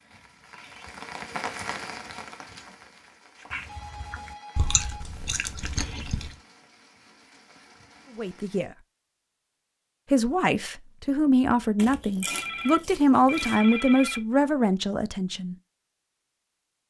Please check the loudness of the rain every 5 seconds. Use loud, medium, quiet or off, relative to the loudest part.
loud, quiet, off, off.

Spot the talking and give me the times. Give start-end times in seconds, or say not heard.
8.2-8.7, 10.1-15.6.